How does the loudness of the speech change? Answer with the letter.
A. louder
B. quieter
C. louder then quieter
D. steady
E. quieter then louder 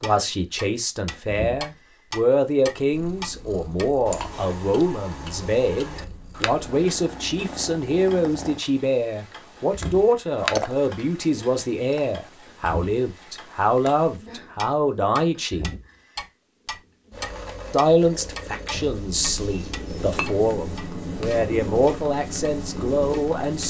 D.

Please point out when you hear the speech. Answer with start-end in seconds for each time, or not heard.
0.0-15.7, 17.7-23.6.